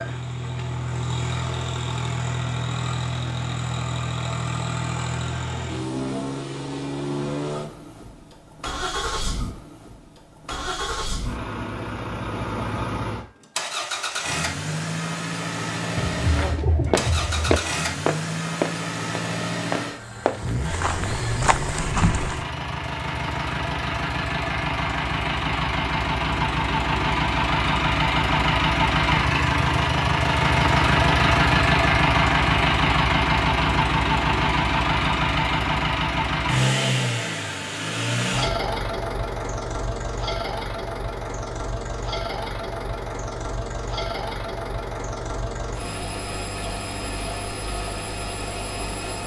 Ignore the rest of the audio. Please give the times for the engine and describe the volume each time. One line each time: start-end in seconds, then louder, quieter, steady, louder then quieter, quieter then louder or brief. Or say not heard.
0.0-49.2 louder then quieter.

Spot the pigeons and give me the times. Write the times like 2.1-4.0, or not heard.
15.9-17.6.